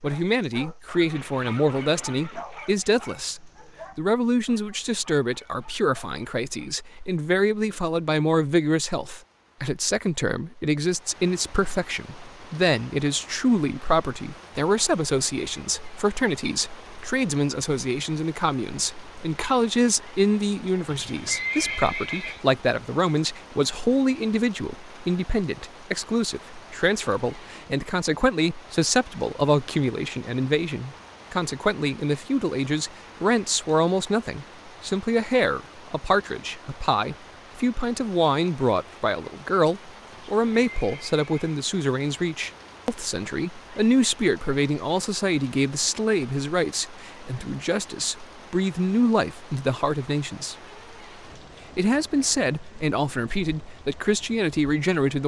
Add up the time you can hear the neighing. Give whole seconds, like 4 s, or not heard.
5 s.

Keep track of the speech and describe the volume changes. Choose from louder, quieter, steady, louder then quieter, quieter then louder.
steady.